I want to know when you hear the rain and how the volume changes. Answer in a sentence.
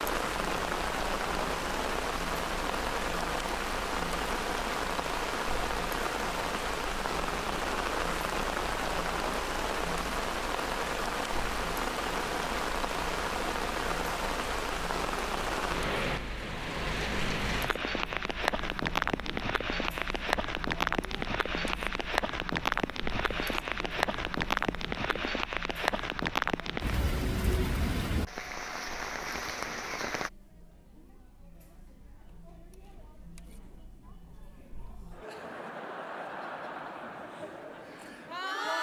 The rain can be heard from 0.0 to 30.3 s, at a steady volume.